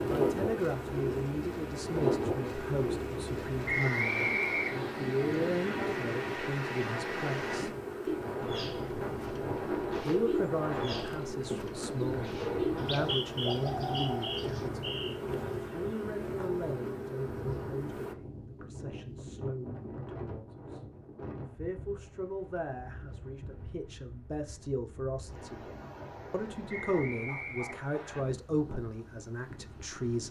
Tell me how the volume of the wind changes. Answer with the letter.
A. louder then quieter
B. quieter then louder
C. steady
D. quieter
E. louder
D.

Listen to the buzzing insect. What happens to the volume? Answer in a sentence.
The volume of the buzzing insect stays about the same.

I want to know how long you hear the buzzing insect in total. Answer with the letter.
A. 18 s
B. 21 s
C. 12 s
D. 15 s
A.